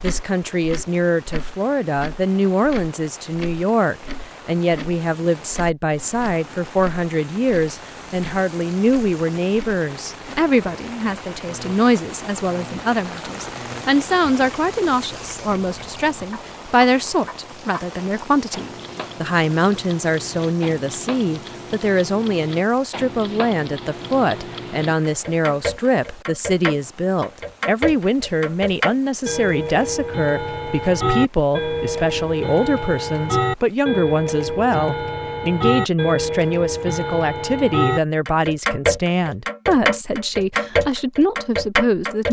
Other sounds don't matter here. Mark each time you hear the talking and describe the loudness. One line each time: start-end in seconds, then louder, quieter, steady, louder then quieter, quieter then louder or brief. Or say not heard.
0.0-42.2 steady.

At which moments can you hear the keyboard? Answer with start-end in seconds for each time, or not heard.
not heard.